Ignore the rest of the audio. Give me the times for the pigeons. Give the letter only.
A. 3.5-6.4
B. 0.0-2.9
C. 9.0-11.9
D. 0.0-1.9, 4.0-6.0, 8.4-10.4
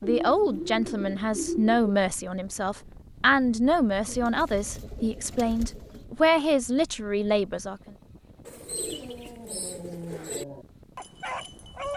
D.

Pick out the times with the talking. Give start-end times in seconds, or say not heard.
0.0-7.9.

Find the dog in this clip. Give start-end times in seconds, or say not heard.
9.0-11.9.